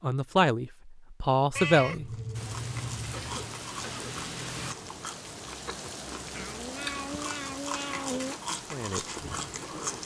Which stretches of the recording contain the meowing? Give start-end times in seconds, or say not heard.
1.6-3.5, 6.3-8.3.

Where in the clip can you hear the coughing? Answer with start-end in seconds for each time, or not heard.
3.1-4.2.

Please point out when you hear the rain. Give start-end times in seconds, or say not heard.
2.3-10.0.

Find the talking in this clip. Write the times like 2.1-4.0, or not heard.
0.0-2.1, 8.5-10.0.